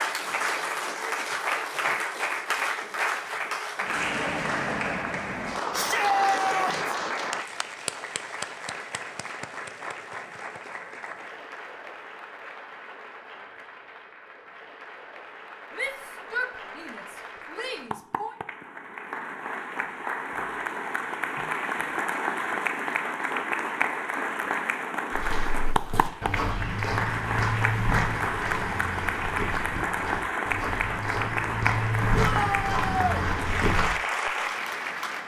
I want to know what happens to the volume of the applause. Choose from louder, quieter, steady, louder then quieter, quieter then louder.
quieter then louder.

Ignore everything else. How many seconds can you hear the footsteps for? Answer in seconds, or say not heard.
9 s.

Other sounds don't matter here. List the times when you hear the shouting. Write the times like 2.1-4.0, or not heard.
5.7-7.0, 15.8-18.4, 32.1-33.2.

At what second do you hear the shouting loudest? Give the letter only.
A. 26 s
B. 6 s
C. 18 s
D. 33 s
B.